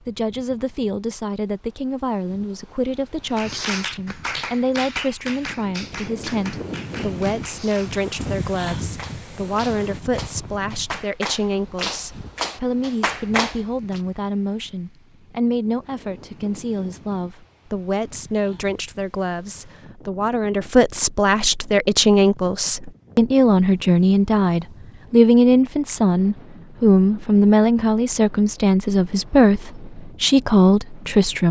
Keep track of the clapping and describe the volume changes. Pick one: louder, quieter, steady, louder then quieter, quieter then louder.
quieter then louder.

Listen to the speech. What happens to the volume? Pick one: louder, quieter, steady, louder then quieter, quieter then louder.
louder.